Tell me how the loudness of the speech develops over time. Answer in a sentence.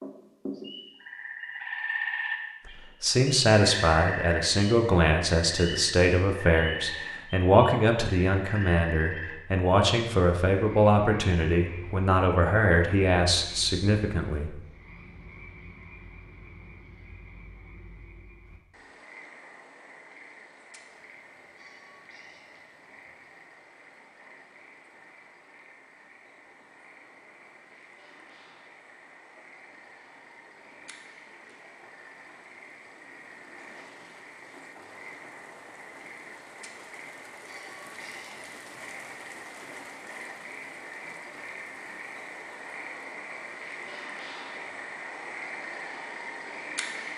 The loudness of the speech stays about the same.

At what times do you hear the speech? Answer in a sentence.
You can hear the speech from 2.6 to 14.6 s.